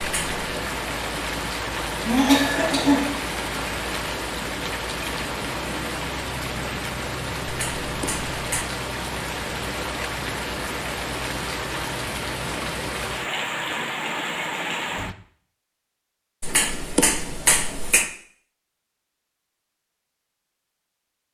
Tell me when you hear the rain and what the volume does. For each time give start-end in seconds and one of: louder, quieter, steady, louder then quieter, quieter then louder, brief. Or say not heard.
0.0-15.2 steady.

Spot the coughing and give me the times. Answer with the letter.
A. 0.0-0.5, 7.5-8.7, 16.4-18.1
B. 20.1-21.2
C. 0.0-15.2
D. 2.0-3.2
D.